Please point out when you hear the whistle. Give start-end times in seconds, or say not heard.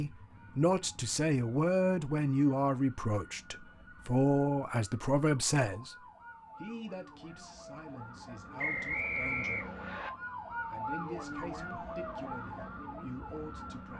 8.6-10.1.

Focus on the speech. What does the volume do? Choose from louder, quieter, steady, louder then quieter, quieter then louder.
quieter.